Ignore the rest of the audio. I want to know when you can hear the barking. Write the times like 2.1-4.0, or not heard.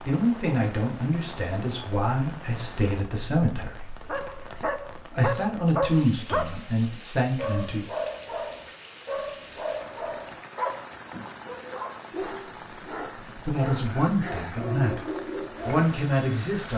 4.0-15.8.